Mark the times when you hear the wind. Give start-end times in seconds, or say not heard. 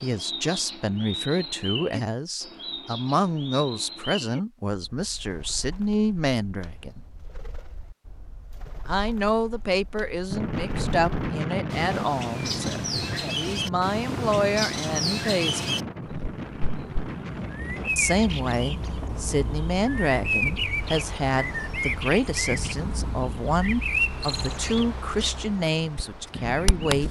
10.3-27.0.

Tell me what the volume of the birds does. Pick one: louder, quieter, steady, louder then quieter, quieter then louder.
quieter then louder.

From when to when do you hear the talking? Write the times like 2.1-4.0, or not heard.
0.0-7.0, 8.8-15.9, 17.9-27.0.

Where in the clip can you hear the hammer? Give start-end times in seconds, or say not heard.
not heard.